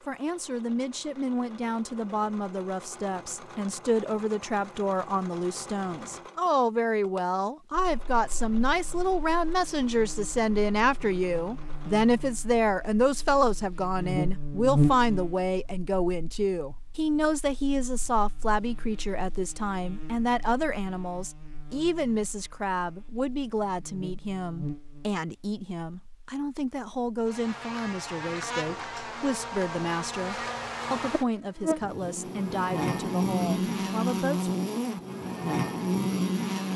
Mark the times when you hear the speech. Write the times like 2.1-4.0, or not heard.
0.1-34.5.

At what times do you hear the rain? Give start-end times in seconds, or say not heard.
not heard.